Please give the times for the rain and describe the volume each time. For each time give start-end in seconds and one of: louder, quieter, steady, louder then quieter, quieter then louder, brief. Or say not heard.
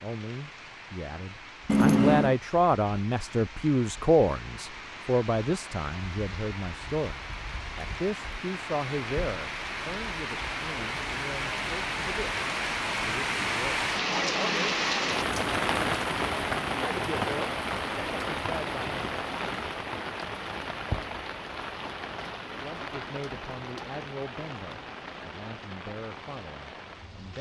0.0-27.3 louder then quieter.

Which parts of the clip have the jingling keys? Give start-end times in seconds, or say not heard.
1.6-2.4.